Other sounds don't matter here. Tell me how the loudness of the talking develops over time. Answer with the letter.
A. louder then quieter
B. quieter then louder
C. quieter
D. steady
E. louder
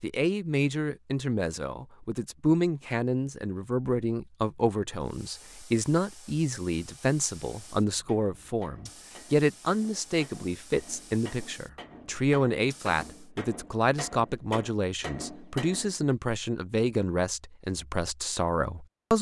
D.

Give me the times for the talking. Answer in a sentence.
The talking can be heard from 0.0 to 19.1 s.